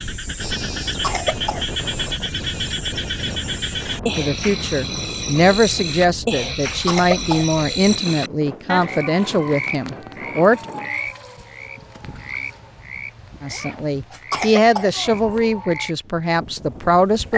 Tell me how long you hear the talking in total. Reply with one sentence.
You can hear the talking for 10 seconds altogether.